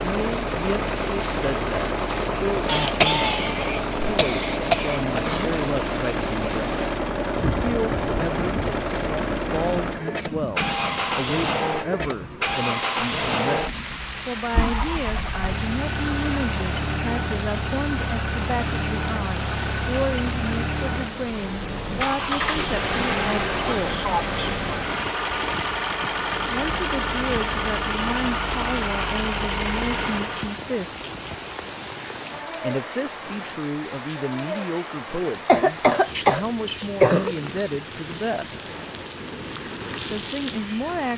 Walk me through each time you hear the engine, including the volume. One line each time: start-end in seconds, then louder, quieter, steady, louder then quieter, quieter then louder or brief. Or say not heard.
0.0-30.6 steady.